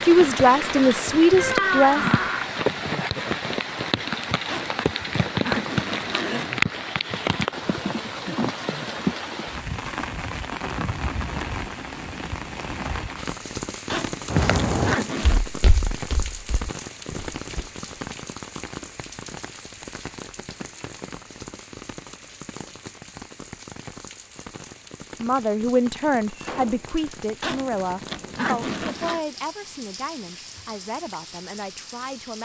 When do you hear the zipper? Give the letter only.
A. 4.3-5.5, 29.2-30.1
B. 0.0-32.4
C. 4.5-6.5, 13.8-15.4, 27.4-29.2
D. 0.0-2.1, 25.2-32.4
C.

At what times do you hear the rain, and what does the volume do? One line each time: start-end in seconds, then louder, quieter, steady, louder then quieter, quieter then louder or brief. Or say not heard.
0.0-32.4 quieter.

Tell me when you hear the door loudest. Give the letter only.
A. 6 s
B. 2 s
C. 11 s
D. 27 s
B.